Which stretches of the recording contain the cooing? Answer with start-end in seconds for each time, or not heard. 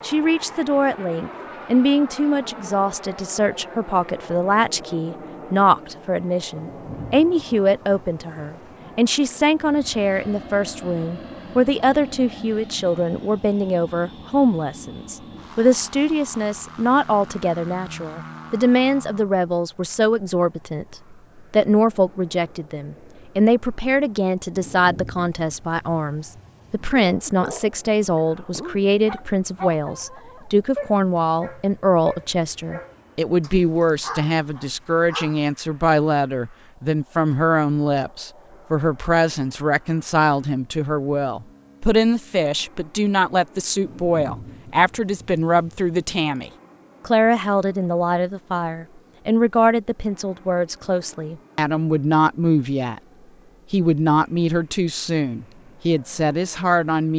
not heard.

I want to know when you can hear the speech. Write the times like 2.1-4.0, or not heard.
0.0-53.0, 53.7-57.1.